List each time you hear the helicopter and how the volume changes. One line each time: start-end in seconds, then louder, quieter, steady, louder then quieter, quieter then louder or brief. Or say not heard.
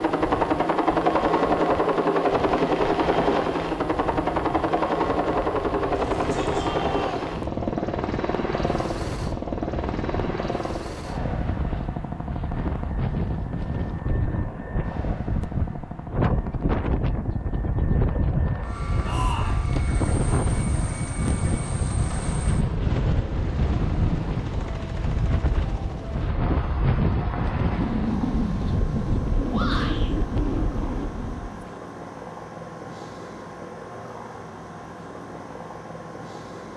0.0-36.7 quieter.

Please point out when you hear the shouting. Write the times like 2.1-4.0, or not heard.
5.9-7.3, 19.0-19.6, 29.5-30.1.